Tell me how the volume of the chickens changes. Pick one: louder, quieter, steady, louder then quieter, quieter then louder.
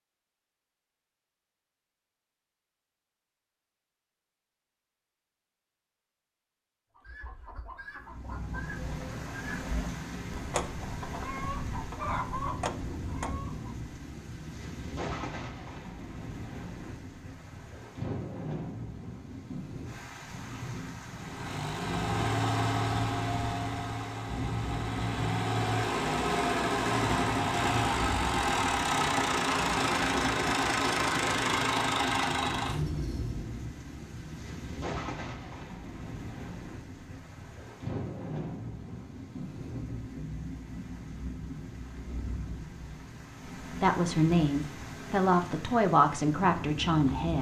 louder.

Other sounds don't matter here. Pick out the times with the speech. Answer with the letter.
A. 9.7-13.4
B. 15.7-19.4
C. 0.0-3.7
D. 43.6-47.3
D.